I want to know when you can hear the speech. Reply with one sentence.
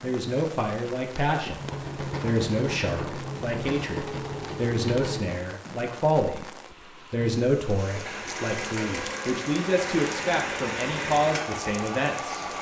The speech can be heard from 0.0 to 1.6 s, from 2.2 to 6.5 s and from 7.1 to 12.4 s.